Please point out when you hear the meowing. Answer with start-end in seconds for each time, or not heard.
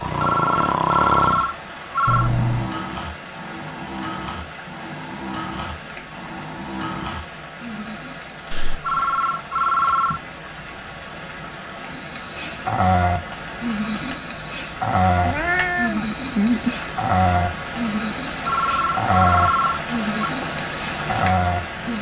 2.0-2.7, 8.5-8.9, 15.2-16.8.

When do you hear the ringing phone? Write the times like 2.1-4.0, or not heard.
0.1-2.3, 8.8-10.2, 18.4-20.3.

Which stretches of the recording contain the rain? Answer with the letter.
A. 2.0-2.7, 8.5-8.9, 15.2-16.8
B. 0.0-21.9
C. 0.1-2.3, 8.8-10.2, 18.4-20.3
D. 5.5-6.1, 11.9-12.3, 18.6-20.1
B.